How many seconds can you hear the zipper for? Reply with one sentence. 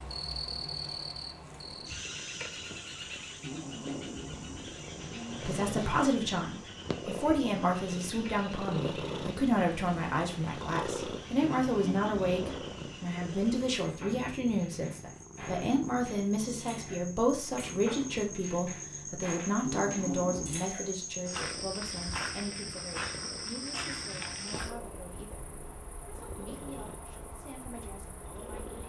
You can hear the zipper for 5 seconds altogether.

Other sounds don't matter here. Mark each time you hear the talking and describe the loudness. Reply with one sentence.
The talking can be heard from 5.3 to 28.8 s, getting quieter.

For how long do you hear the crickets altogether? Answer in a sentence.
The crickets can be heard for 29 seconds in total.